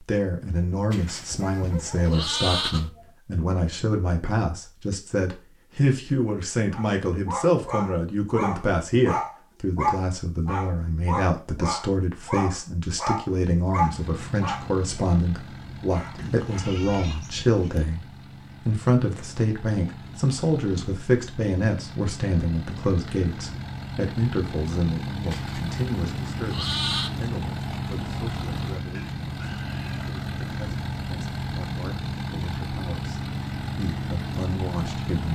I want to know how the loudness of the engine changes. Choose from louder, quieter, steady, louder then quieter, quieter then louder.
louder.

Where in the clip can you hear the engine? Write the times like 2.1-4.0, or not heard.
13.7-35.3.